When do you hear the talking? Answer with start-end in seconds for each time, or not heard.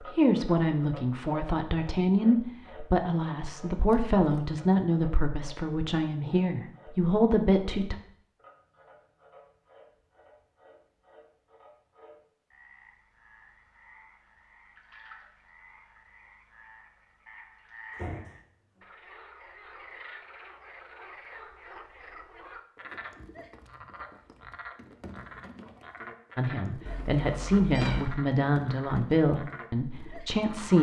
0.1-8.0, 26.4-30.7.